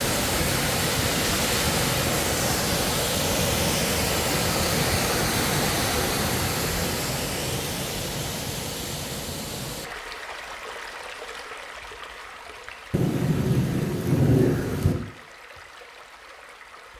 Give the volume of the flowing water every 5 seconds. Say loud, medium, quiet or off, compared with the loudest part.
loud, loud, quiet, quiet.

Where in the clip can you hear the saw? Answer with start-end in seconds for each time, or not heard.
not heard.